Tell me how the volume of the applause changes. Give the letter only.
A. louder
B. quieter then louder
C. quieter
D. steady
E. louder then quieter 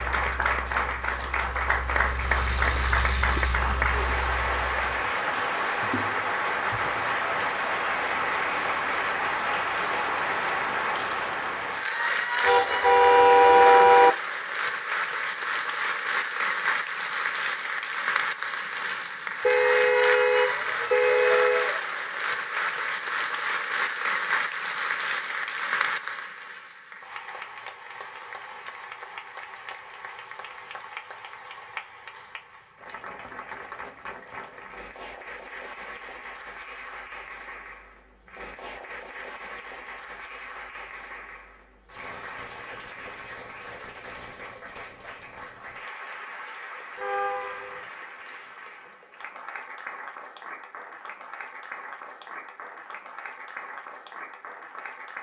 C.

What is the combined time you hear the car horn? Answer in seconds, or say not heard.
5 s.